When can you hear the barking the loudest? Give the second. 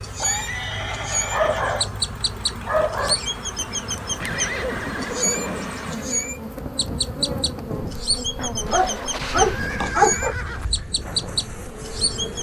10 s.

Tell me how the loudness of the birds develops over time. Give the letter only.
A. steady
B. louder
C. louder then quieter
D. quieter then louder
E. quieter
A.